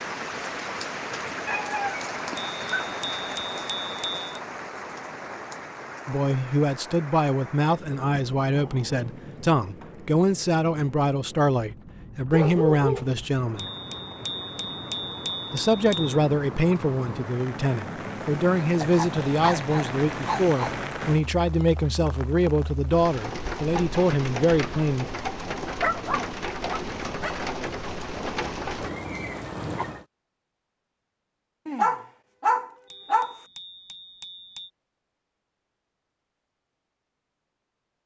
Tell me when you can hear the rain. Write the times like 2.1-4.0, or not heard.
0.0-30.1.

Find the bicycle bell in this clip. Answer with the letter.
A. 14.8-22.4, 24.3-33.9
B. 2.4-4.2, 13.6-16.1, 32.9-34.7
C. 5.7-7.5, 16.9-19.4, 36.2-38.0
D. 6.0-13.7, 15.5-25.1
B.